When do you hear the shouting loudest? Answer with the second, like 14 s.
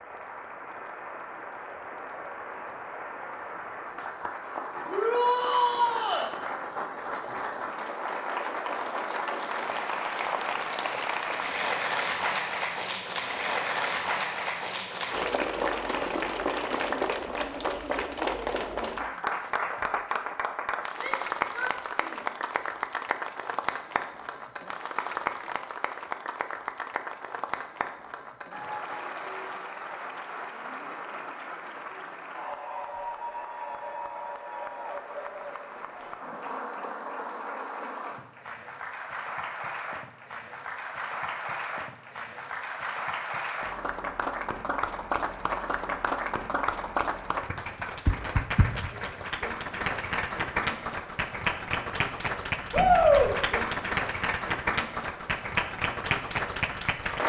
53 s.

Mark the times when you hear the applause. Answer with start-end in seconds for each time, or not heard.
0.0-57.2.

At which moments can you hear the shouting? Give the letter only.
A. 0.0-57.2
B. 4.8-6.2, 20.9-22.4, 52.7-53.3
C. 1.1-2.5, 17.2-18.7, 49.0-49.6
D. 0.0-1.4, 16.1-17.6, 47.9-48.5
B.